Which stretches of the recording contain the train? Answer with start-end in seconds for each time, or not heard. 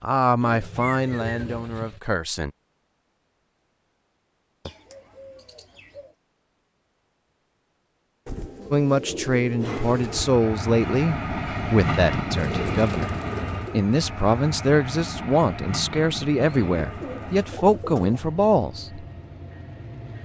9.6-20.1.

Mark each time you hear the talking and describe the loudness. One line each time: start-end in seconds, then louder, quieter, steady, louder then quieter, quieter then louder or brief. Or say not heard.
0.0-2.5 brief
8.7-19.1 steady.